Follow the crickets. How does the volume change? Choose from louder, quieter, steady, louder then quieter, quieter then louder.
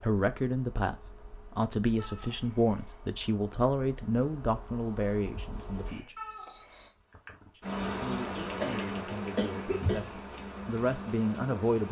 louder then quieter.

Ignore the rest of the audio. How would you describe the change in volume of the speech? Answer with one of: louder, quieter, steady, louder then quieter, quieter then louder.
quieter then louder.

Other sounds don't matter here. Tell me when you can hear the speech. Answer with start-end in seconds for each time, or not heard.
0.0-6.2, 7.5-11.8.